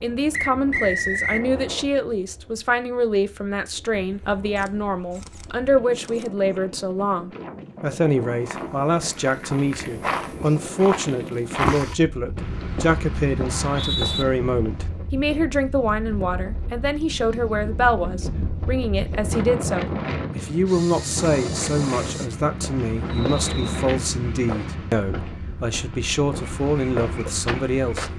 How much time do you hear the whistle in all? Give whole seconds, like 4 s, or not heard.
3 s.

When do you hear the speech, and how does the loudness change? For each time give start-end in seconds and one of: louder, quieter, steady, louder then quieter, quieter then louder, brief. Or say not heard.
0.0-28.1 steady.